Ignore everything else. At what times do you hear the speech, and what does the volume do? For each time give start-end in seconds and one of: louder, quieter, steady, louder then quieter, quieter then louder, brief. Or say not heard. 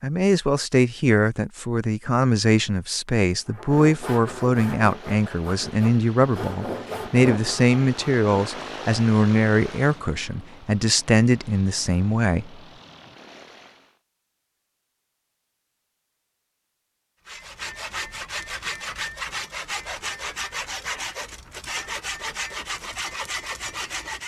0.0-12.5 steady.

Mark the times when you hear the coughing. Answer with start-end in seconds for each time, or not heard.
not heard.